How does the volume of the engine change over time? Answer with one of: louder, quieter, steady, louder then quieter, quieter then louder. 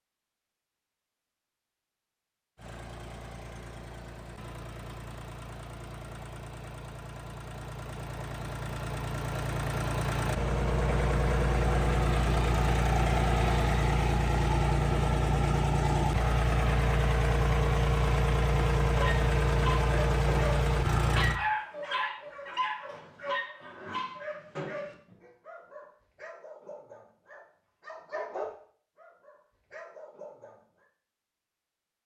louder.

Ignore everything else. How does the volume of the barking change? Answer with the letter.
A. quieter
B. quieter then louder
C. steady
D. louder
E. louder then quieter
B.